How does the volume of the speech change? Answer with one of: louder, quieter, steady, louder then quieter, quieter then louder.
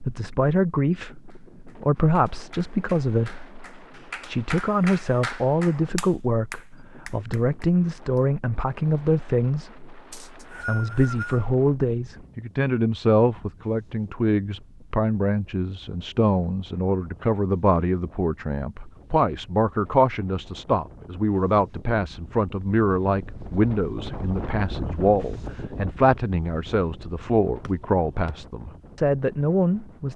steady.